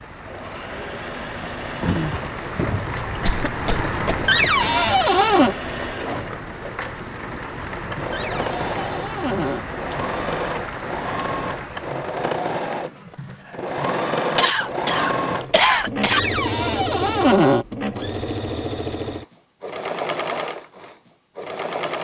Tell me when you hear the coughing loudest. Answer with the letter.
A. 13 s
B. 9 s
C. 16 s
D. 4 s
C.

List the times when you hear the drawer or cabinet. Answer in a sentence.
The drawer or cabinet can be heard from 4.2 to 5.5 s, from 8.1 to 9.7 s and from 16.1 to 17.6 s.